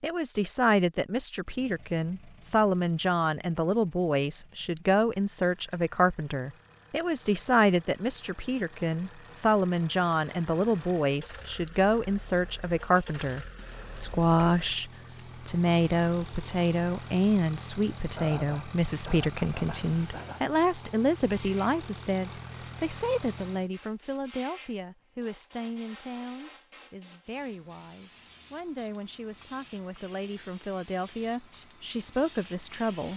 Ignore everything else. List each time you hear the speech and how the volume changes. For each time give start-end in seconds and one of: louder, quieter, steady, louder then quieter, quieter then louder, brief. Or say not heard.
0.0-33.1 quieter.